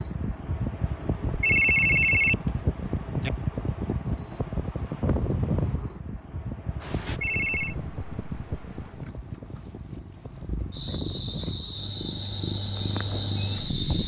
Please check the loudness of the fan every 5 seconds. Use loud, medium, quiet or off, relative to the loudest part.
loud, loud, medium.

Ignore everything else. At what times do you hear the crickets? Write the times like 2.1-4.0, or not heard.
6.8-14.0.